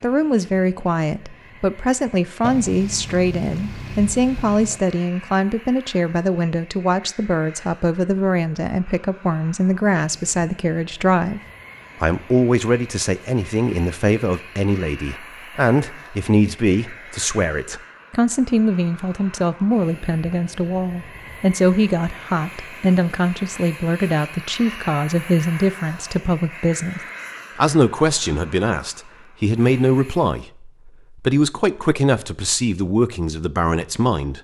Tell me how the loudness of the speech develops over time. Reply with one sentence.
The volume of the speech stays about the same.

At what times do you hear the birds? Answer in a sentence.
You can't hear the birds here.